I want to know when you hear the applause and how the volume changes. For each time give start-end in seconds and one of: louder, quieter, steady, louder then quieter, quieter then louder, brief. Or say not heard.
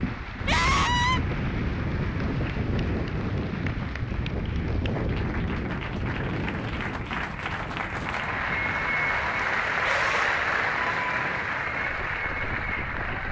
0.0-13.2 louder.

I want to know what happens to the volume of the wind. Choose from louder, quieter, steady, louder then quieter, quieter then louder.
quieter.